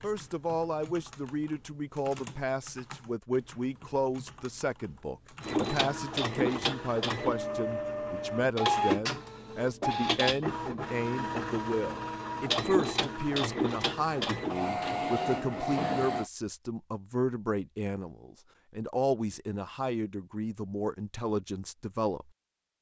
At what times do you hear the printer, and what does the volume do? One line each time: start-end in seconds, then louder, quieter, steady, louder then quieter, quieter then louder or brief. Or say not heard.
5.4-16.2 steady.